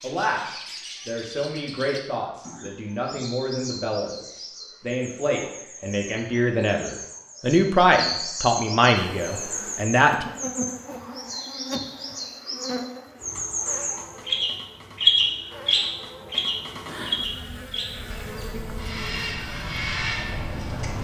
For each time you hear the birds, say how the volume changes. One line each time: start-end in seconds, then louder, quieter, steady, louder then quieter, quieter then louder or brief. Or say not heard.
0.0-21.0 louder then quieter.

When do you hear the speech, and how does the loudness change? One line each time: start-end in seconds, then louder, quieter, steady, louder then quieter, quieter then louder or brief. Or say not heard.
0.0-10.2 louder.